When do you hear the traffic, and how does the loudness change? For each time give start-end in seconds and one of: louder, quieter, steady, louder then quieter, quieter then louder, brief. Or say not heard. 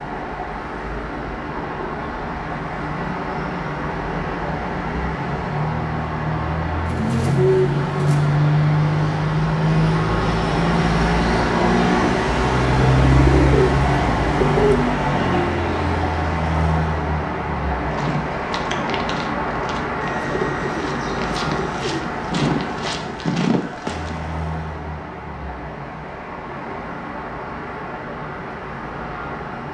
0.0-29.6 louder then quieter.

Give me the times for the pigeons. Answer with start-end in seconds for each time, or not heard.
6.8-8.3, 12.9-14.8, 20.0-22.0.